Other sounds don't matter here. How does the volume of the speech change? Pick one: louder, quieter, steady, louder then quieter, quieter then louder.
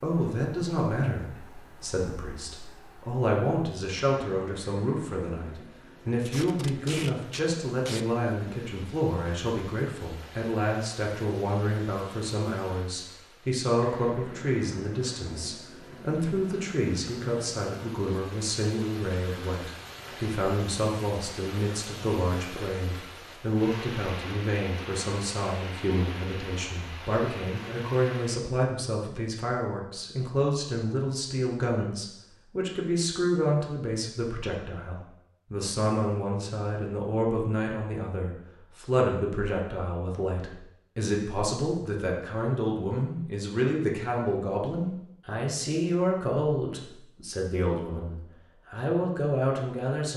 steady.